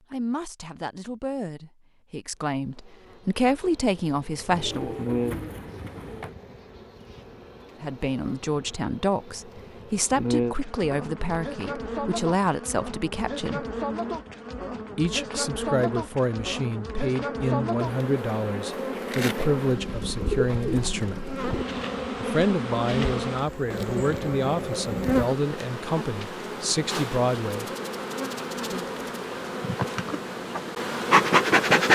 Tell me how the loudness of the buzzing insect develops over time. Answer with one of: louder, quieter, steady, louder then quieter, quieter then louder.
louder.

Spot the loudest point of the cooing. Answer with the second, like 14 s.
20 s.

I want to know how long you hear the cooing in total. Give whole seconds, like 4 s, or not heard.
4 s.